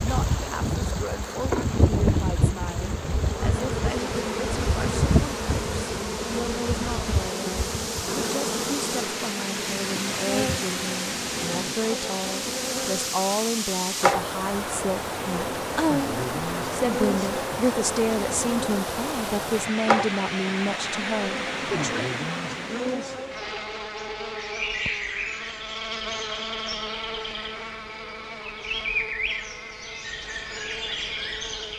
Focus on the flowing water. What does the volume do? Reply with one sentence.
The loudness of the flowing water goes up.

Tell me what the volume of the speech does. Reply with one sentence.
The loudness of the speech goes up.